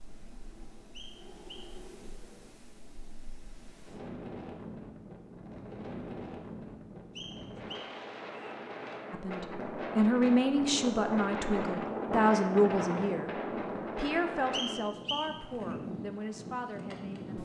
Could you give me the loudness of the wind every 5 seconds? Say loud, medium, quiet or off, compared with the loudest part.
quiet, medium, loud, medium.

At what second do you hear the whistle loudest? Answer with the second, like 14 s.
15 s.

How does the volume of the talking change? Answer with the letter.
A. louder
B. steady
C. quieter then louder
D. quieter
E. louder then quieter
D.